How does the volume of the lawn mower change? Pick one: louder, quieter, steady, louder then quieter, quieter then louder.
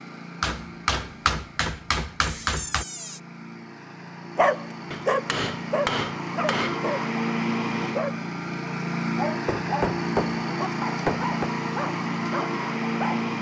louder.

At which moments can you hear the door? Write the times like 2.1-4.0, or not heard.
2.2-3.2.